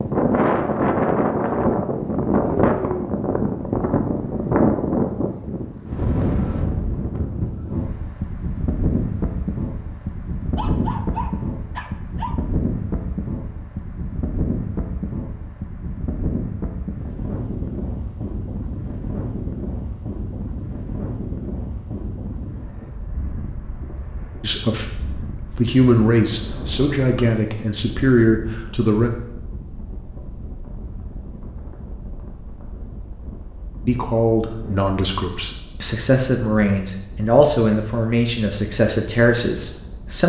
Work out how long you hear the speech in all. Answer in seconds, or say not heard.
11 s.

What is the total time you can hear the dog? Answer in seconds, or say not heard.
2 s.